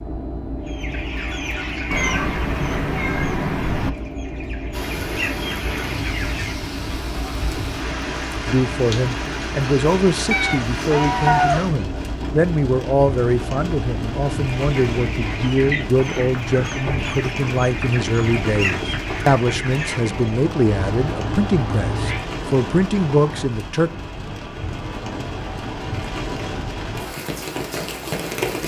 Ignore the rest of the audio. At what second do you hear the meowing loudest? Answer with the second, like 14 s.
11 s.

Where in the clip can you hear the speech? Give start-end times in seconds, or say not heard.
8.4-23.9.